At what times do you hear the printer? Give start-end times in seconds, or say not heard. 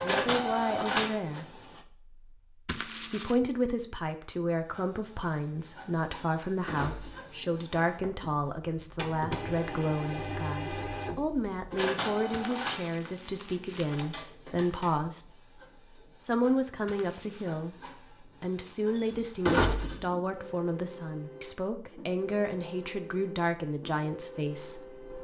0.0-1.8, 4.7-25.1.